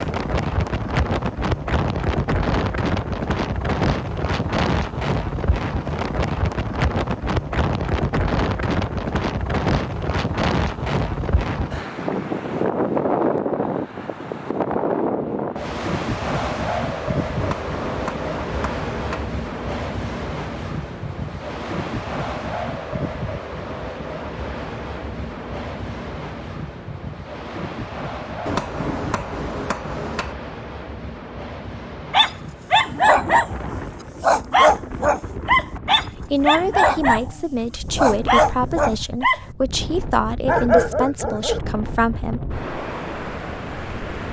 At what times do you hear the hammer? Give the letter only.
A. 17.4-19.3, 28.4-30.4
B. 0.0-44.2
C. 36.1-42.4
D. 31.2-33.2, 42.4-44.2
A.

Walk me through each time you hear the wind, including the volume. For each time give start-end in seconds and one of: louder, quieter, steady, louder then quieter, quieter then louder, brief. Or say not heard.
0.0-44.2 quieter.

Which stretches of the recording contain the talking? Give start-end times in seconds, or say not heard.
36.1-42.4.